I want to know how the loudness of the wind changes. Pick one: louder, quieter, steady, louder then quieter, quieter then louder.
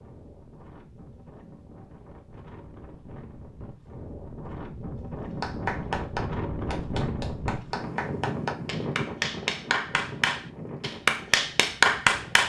louder then quieter.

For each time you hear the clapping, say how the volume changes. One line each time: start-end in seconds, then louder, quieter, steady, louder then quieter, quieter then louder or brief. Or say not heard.
5.3-12.4 louder.